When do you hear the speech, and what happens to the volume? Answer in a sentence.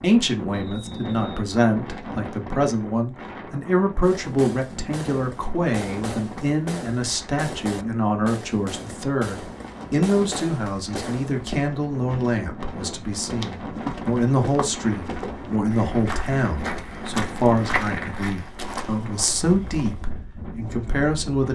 The speech can be heard from 0.0 to 21.4 s, at a steady volume.